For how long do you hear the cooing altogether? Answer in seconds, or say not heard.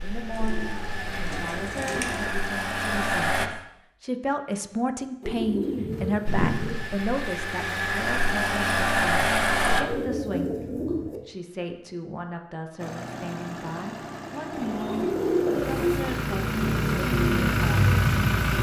7 s.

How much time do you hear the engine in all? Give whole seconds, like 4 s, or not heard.
13 s.